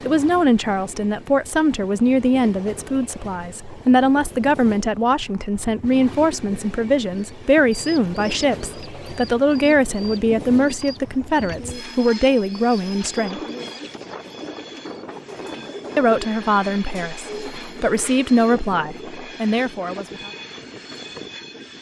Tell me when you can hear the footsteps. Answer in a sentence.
The footsteps can't be heard in this clip.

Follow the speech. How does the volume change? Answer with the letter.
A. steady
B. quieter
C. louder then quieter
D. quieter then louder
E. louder
A.